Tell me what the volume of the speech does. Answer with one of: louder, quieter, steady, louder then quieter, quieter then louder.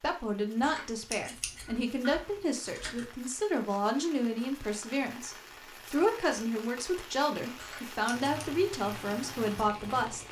steady.